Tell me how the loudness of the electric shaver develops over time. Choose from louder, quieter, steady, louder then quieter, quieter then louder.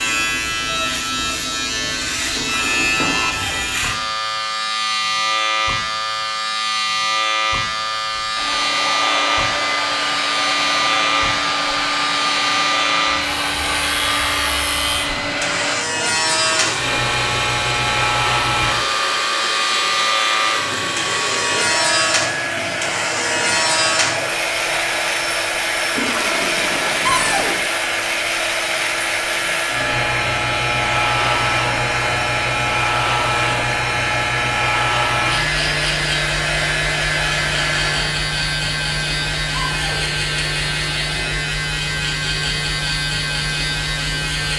steady.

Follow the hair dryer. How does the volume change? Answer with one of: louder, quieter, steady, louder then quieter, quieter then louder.
steady.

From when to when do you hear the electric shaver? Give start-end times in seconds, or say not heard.
0.0-44.5.